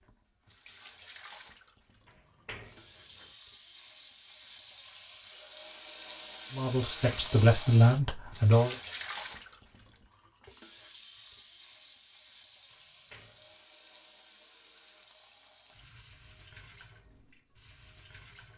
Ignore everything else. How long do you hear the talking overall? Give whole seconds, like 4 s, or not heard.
2 s.